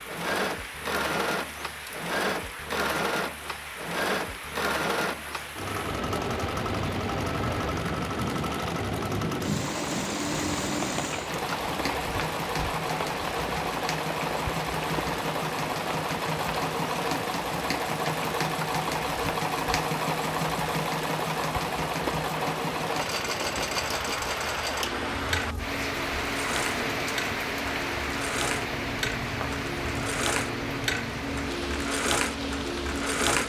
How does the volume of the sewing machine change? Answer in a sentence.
The loudness of the sewing machine stays about the same.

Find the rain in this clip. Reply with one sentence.
The rain can be heard from 0.0 to 33.3 s.